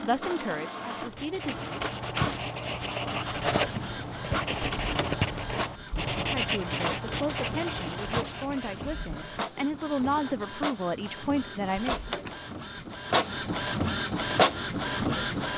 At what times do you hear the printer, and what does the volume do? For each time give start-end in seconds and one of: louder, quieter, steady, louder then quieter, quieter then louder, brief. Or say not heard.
0.0-15.5 louder.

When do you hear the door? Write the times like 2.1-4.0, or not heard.
4.6-5.2, 11.8-12.4.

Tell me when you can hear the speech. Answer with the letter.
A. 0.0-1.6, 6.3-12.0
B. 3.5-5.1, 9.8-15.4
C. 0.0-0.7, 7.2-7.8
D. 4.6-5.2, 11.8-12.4
A.